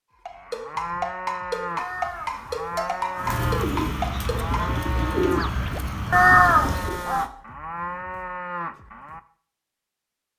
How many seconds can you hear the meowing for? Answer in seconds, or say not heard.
3 s.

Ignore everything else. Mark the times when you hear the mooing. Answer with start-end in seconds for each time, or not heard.
0.2-9.2.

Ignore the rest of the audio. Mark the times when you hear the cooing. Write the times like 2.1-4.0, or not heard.
3.1-7.0.